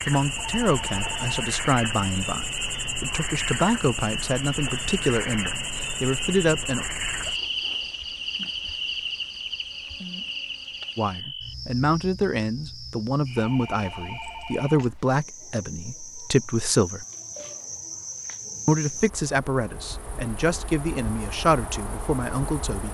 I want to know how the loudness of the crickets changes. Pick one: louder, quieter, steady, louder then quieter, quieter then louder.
quieter.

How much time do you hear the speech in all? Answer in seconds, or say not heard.
17 s.